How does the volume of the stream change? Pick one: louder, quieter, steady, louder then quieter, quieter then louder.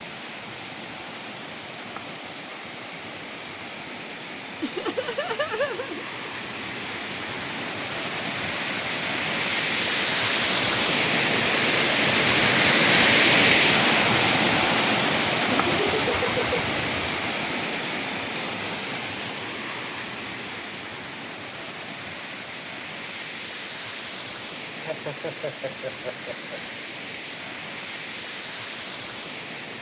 louder then quieter.